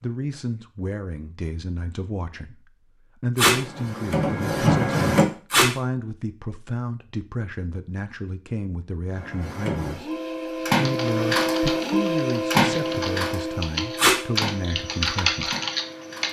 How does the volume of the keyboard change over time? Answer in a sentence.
The loudness of the keyboard goes up.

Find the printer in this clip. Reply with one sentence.
The printer can be heard from 3.4 to 5.2 s and from 9.1 to 16.2 s.